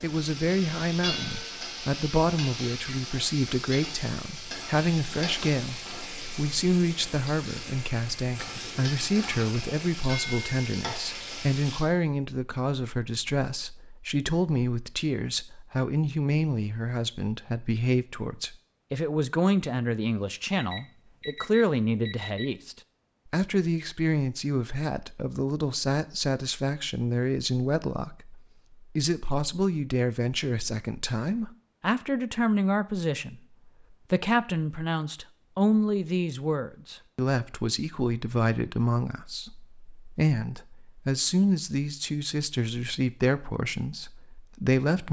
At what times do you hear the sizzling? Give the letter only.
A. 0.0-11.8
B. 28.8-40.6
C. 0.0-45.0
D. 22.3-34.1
A.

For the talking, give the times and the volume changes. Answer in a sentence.
The talking can be heard from 0.0 to 45.0 s, at a steady volume.